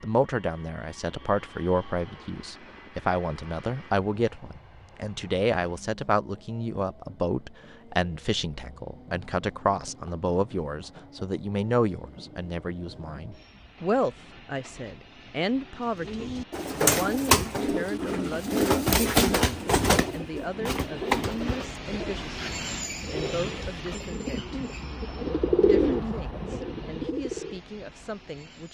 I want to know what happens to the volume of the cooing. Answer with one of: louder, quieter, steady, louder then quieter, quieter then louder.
quieter then louder.